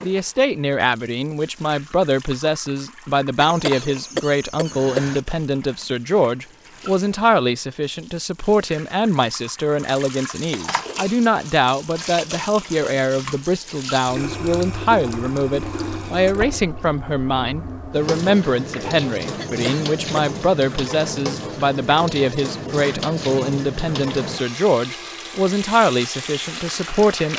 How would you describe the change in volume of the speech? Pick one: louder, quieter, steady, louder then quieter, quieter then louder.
steady.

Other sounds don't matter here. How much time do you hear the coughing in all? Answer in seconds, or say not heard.
3 s.